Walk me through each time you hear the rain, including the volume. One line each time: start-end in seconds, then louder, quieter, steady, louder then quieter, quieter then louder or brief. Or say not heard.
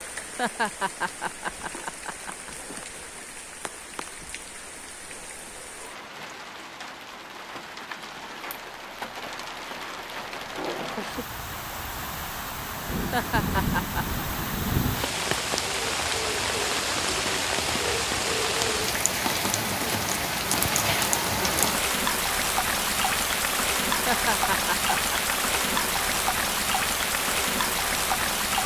0.0-28.6 louder.